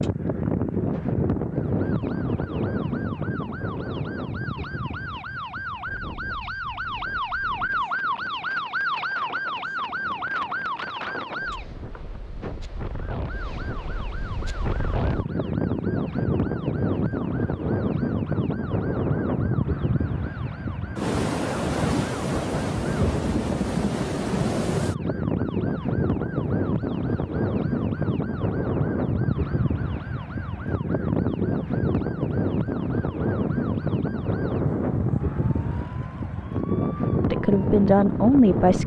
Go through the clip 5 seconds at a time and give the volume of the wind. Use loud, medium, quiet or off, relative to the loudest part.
loud, quiet, medium, loud, loud, loud, loud, loud.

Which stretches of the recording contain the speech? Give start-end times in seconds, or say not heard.
37.3-38.8.